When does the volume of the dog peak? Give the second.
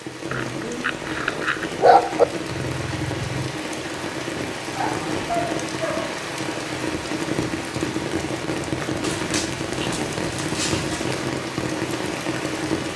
2 s.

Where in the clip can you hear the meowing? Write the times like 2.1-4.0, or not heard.
2.5-3.6.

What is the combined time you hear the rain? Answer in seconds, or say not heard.
13 s.